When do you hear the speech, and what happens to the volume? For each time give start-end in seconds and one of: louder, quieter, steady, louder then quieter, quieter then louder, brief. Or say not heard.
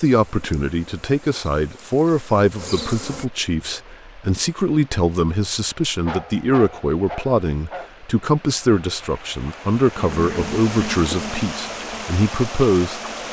0.0-13.0 steady.